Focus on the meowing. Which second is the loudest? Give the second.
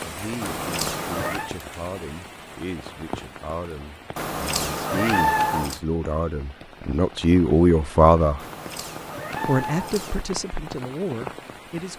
5 s.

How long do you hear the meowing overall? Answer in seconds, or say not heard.
5 s.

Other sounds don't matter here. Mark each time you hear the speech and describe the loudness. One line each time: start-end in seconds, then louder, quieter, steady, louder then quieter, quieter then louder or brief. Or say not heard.
0.0-8.4 louder
9.4-11.9 brief.